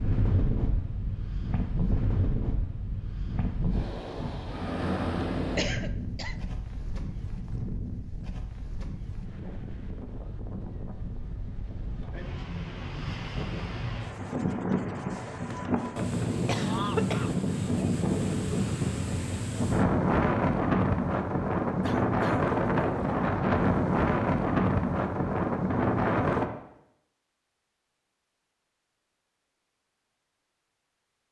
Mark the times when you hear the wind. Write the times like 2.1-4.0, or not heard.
0.0-26.5.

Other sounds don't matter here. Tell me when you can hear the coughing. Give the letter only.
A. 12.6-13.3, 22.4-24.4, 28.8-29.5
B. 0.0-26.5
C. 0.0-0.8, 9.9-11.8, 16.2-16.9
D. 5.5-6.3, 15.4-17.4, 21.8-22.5
D.